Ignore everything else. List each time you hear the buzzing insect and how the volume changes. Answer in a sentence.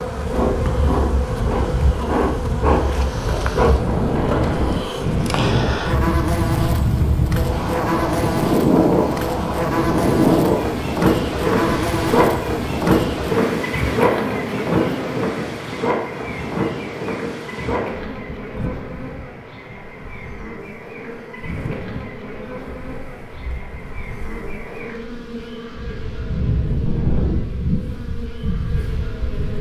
The buzzing insect can be heard from 0.0 to 29.5 s, getting quieter.